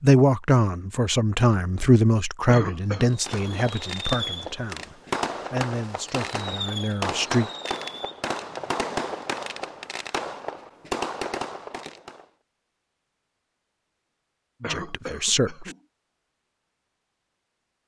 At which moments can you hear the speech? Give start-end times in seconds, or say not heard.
0.0-7.5, 14.6-15.8.